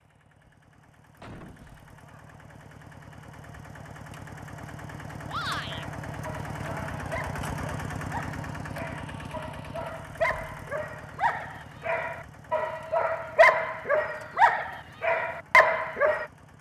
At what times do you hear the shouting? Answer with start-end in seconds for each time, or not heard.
5.2-5.8.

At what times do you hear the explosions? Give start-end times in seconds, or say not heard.
1.2-1.9.